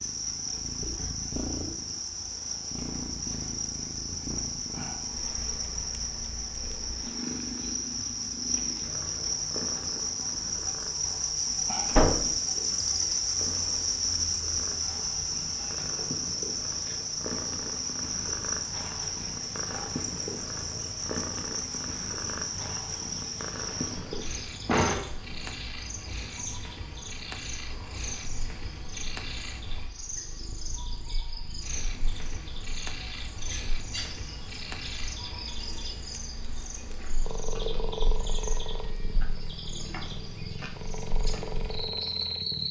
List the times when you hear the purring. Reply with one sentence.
The purring can be heard from 0.0 to 42.6 s.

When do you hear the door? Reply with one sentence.
You can hear the door from 11.9 to 12.3 s and from 24.6 to 25.5 s.